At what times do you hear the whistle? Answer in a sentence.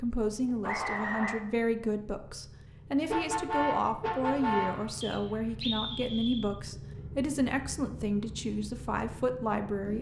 You can hear the whistle from 0.7 to 1.4 s and from 5.0 to 6.5 s.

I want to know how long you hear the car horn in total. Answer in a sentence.
The car horn can be heard for 2 seconds in total.